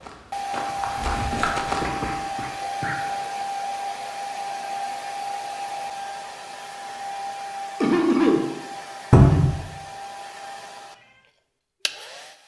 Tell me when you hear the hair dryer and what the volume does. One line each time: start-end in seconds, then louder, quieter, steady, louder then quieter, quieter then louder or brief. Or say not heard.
0.0-12.4 quieter.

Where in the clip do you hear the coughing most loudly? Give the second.
8 s.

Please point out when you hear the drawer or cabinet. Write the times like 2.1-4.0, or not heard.
0.9-1.6, 9.1-9.5.